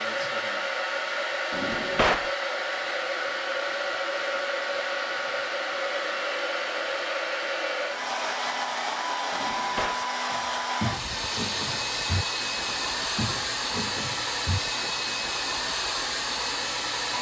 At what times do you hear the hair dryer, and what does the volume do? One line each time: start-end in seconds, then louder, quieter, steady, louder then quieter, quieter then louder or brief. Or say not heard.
0.0-17.1 steady.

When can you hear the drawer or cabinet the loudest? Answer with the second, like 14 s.
2 s.